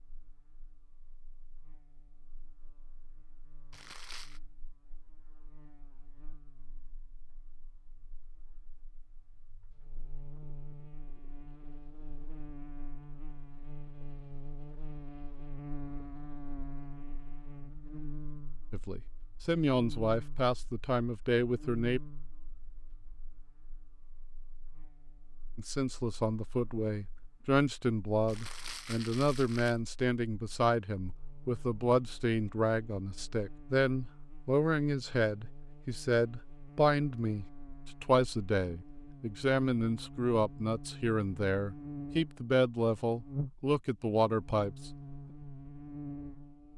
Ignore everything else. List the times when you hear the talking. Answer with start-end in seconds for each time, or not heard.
18.7-22.0, 25.6-44.9.